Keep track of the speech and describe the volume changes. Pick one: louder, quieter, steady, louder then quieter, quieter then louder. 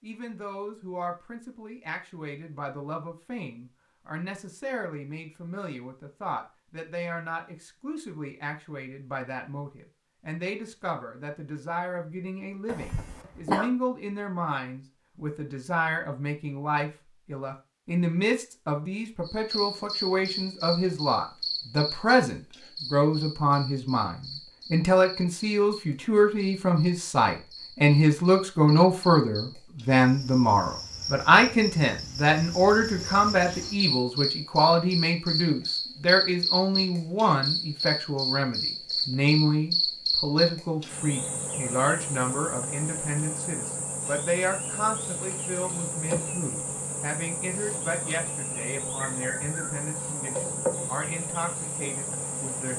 louder then quieter.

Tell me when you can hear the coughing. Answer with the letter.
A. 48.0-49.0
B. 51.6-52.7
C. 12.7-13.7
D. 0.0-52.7
C.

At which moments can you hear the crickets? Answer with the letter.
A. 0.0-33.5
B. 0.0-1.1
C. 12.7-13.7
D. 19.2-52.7
D.